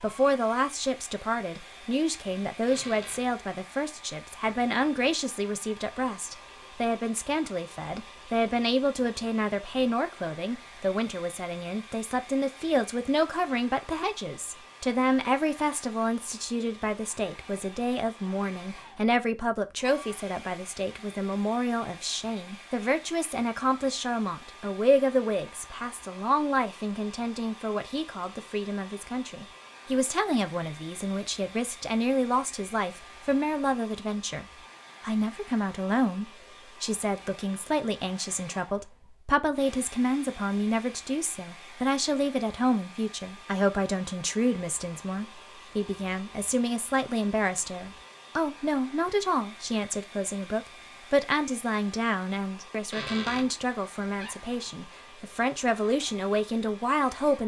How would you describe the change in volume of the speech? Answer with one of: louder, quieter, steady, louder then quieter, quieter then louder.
steady.